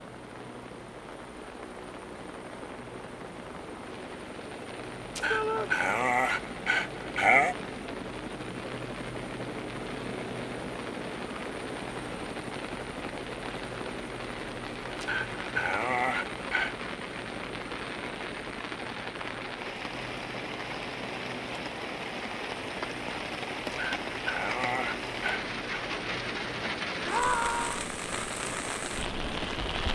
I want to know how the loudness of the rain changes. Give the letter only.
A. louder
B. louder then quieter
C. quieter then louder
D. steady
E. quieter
A.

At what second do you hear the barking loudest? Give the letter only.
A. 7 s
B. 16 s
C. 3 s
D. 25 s
A.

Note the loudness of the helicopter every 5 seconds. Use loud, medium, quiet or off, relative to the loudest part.
medium, loud, loud, loud, loud, loud.